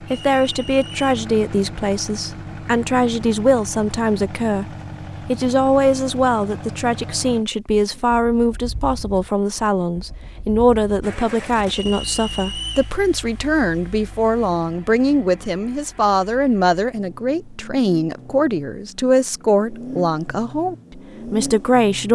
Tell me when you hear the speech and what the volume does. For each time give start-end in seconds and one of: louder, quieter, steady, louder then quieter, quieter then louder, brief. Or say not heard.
0.0-4.7 quieter then louder
5.2-22.0 steady.